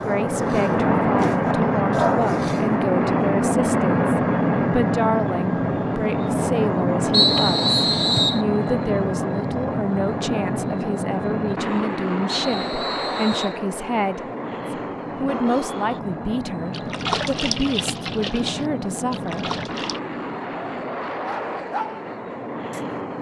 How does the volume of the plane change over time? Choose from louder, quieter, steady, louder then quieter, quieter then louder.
quieter.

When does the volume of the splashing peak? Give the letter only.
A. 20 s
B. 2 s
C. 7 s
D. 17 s
D.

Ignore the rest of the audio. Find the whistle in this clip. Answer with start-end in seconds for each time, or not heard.
7.1-8.4, 12.2-13.6.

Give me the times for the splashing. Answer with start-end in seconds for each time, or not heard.
16.7-20.0.